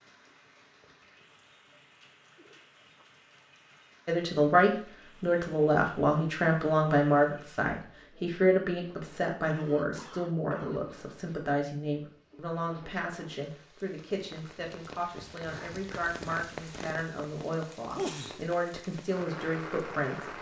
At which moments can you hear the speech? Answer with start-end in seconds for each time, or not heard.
4.0-20.2.